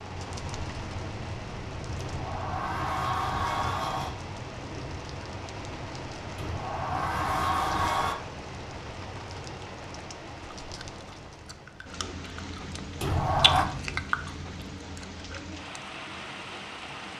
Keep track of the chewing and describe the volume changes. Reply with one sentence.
The loudness of the chewing goes up, then down.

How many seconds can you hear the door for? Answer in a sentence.
The door can be heard for 5 seconds in total.